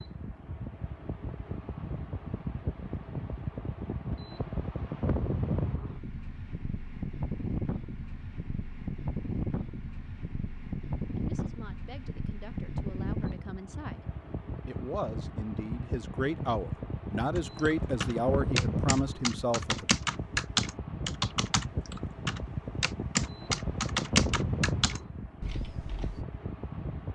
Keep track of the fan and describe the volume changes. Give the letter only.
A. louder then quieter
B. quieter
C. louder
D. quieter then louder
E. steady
E.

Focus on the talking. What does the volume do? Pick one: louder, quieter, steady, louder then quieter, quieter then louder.
louder.